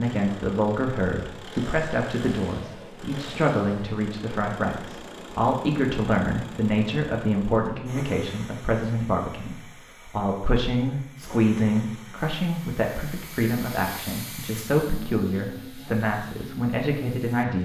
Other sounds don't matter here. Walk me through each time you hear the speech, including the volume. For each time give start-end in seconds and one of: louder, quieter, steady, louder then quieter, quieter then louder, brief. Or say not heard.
0.0-17.6 steady.